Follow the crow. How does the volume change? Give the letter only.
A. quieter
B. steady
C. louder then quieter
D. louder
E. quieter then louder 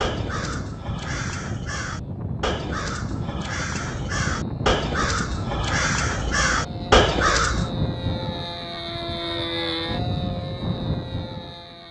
D.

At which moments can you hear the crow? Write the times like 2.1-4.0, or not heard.
0.0-7.7.